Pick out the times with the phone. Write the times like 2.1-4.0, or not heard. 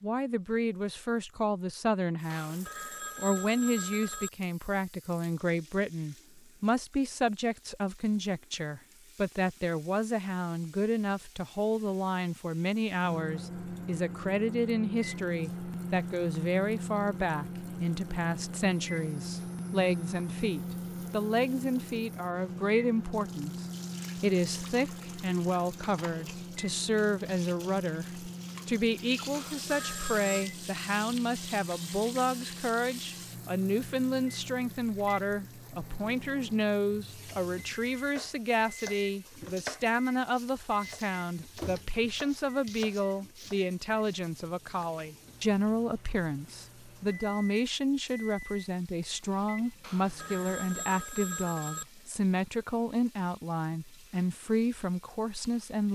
2.3-4.3, 29.3-30.4, 49.8-51.9.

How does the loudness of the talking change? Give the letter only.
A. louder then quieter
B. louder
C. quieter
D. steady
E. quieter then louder
D.